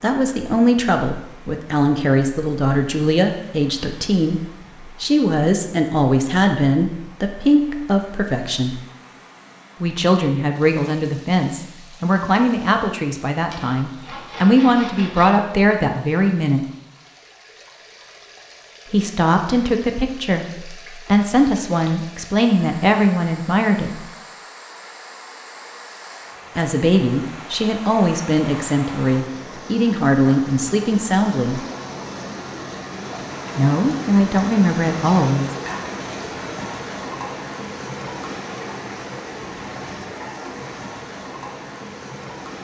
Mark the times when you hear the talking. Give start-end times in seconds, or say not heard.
0.0-4.4, 5.0-8.8, 9.8-16.6, 18.9-24.0, 26.6-31.6, 33.5-35.5.